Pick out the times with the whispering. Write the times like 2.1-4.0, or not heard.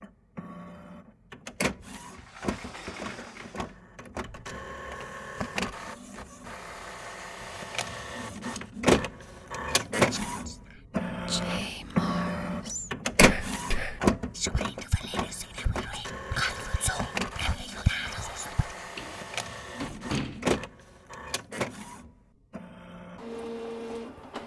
9.6-18.8.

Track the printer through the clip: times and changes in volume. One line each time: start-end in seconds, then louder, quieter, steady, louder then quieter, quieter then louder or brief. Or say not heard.
0.0-24.4 louder then quieter.